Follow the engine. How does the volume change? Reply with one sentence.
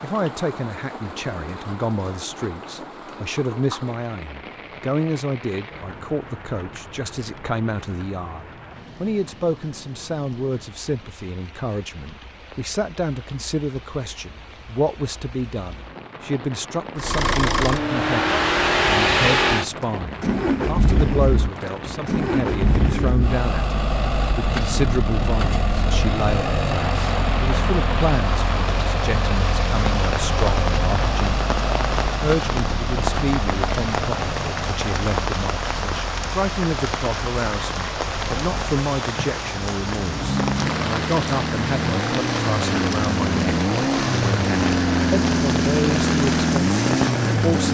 The volume of the engine goes down, then up.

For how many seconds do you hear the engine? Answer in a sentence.
The engine can be heard for 31 seconds in total.